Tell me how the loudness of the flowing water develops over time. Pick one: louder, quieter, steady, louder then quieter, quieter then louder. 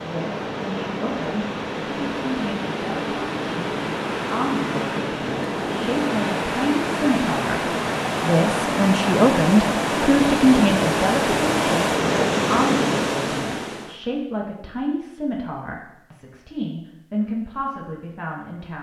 louder.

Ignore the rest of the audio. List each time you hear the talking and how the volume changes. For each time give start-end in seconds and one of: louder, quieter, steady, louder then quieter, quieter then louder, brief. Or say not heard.
0.0-18.7 louder then quieter.